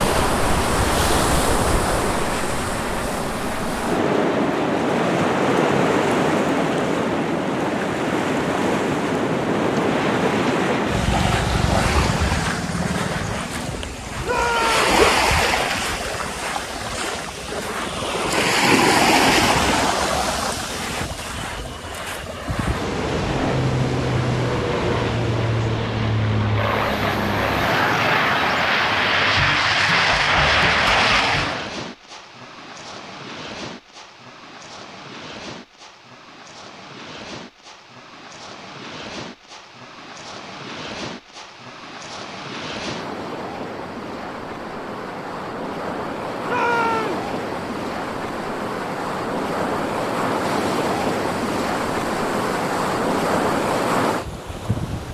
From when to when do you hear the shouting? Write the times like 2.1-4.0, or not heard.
14.2-14.8, 46.5-47.2.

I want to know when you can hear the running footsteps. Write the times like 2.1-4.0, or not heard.
not heard.